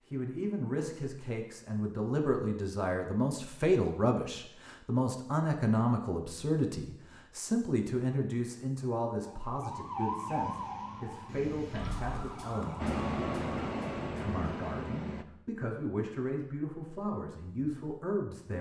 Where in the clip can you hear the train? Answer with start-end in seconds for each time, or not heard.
12.8-15.2.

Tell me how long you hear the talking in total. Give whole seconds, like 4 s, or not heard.
17 s.